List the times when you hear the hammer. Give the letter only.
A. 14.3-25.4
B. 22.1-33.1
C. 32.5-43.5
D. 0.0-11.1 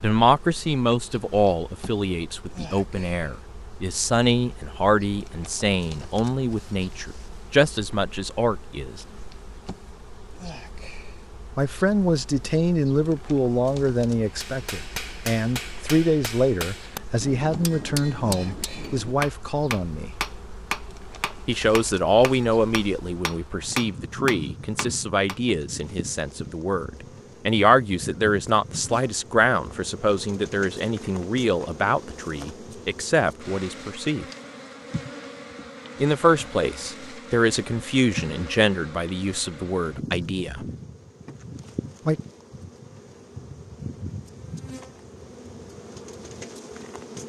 A.